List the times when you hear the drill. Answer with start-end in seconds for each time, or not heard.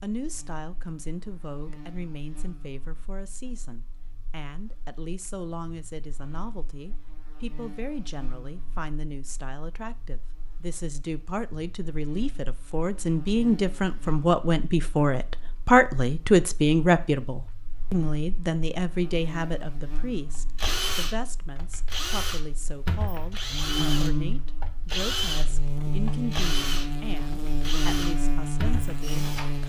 20.4-29.6.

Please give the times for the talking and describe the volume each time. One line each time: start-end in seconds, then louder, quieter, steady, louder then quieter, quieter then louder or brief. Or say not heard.
0.0-29.6 louder then quieter.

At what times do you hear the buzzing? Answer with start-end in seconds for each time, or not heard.
0.1-29.6.